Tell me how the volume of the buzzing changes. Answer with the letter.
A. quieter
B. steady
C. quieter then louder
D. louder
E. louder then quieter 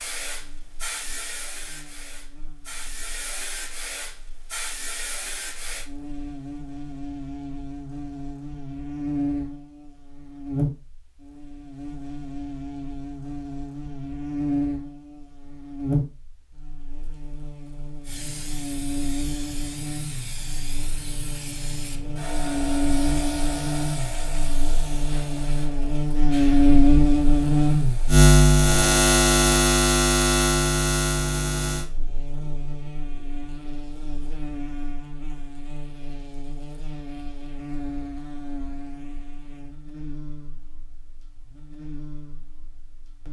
E.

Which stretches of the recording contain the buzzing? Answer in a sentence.
The buzzing can be heard from 0.2 to 43.2 s.